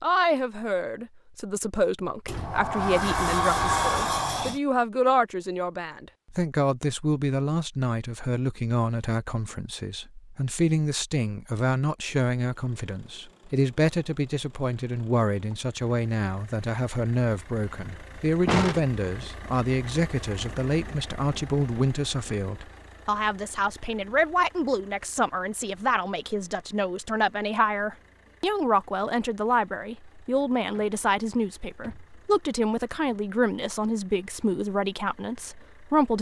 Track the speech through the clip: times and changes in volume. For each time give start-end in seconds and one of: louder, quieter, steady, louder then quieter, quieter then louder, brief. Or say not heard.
0.0-36.1 steady.